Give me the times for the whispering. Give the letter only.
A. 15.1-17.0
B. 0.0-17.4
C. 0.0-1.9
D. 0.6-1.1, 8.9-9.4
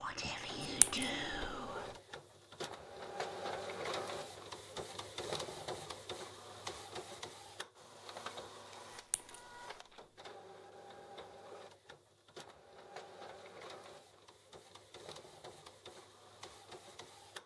C.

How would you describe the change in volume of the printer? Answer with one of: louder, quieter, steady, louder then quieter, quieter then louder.
quieter.